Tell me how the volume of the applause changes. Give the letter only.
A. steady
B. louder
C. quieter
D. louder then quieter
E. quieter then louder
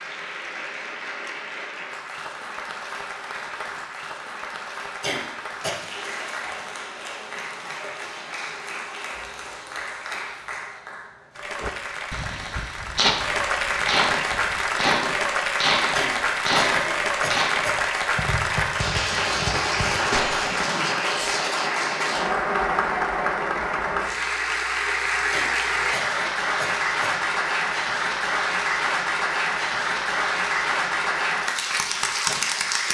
B.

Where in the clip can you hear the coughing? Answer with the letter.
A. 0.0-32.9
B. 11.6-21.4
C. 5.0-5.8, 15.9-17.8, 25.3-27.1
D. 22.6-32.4
C.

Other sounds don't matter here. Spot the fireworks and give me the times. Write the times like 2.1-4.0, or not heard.
11.6-21.4.